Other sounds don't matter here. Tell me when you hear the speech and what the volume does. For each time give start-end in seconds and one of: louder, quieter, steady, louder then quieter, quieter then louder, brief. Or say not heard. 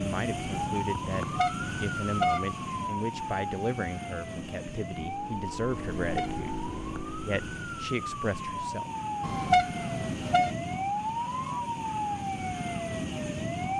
0.0-8.9 steady.